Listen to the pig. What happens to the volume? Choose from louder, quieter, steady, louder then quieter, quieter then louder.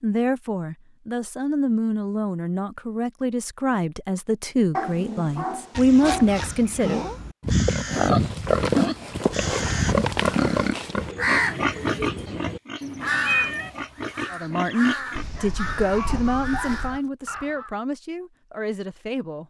quieter.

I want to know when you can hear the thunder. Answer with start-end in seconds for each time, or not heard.
not heard.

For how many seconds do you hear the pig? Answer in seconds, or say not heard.
8 s.